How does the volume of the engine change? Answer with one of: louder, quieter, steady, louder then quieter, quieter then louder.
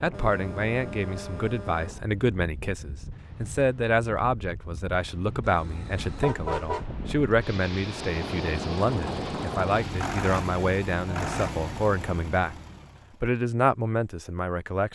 quieter.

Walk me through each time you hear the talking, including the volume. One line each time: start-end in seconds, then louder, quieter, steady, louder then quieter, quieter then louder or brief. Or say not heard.
0.0-12.6 steady
13.2-14.9 brief.